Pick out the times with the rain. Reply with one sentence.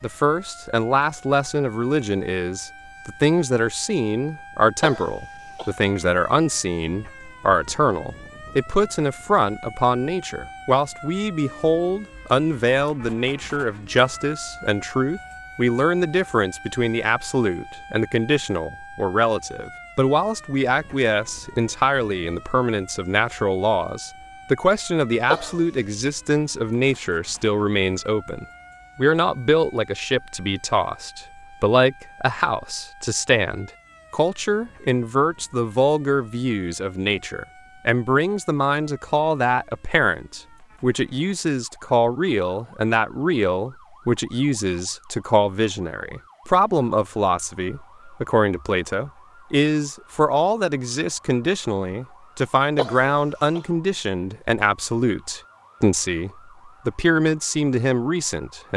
You can't hear the rain here.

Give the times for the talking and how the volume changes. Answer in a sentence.
The talking can be heard from 0.0 to 58.7 s, at a steady volume.